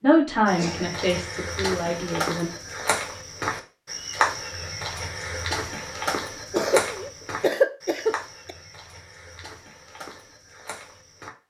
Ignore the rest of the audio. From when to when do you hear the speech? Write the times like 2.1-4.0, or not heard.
0.0-2.5.